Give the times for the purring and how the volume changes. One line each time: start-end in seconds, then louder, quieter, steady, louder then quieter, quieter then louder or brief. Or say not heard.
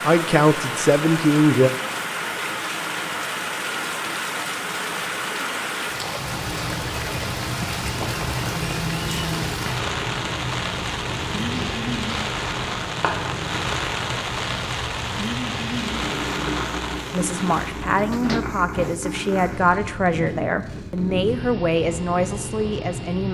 6.2-23.2 steady.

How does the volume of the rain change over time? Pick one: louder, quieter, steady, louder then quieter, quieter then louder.
steady.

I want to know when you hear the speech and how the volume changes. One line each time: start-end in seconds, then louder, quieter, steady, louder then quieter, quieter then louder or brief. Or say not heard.
0.0-1.7 brief
17.1-23.2 steady.